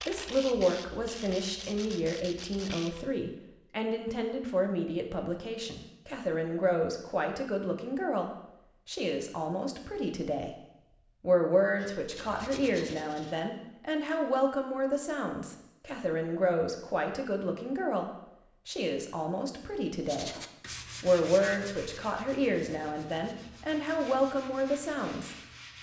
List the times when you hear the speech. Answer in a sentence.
You can hear the speech from 0.0 to 20.4 s and from 21.0 to 25.4 s.